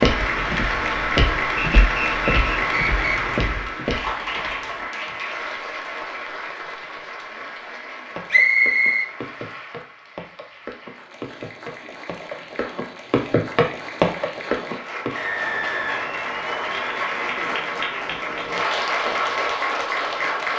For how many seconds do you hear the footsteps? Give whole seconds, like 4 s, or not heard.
12 s.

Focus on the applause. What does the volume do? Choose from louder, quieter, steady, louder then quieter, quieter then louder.
quieter then louder.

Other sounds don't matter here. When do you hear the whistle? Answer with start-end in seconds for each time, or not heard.
1.6-3.2, 8.3-9.1, 15.1-16.9.